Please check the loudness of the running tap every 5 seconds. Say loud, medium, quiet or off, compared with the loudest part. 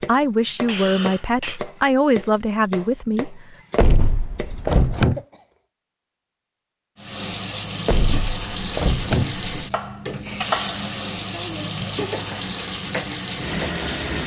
off, loud, loud.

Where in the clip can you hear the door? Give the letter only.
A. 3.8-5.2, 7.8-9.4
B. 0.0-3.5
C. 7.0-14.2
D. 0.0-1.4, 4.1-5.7
A.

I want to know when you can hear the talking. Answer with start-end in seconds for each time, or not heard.
0.0-3.5.